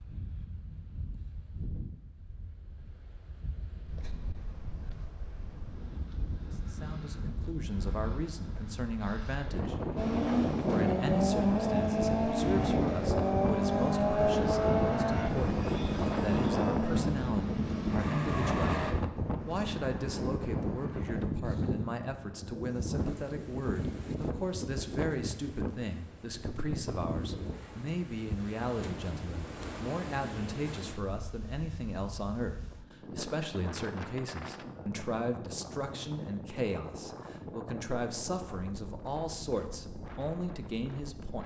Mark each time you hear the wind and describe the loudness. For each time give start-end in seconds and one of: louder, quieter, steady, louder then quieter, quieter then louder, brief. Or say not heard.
0.0-41.4 louder then quieter.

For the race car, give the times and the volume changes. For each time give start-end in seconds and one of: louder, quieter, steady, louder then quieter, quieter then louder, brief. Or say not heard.
9.9-18.9 quieter.